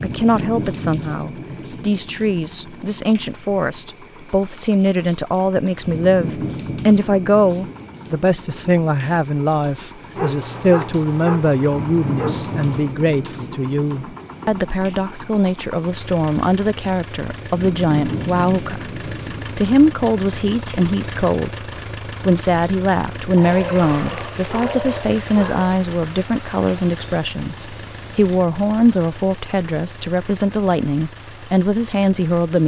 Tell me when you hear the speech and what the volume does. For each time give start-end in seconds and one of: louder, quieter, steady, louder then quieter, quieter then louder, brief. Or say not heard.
0.0-32.6 steady.